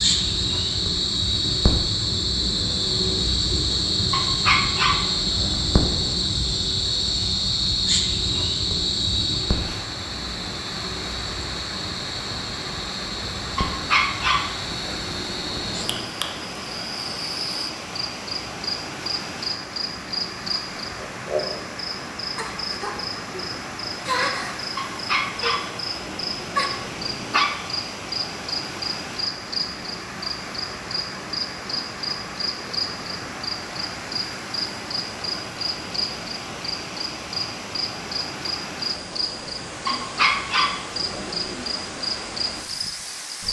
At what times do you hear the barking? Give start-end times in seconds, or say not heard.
4.1-6.2, 13.6-16.1, 24.8-27.6, 39.9-41.7.